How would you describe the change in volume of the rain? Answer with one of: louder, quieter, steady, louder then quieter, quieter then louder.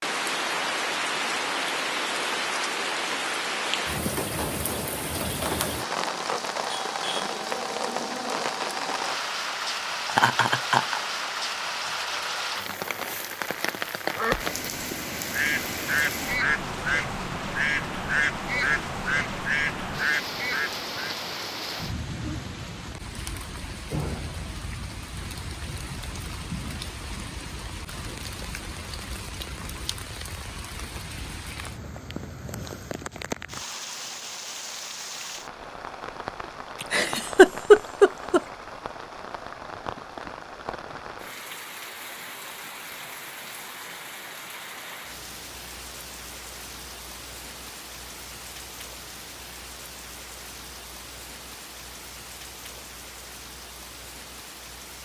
quieter.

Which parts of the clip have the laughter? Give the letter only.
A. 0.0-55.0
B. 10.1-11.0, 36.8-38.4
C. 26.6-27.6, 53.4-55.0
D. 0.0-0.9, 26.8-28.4
B.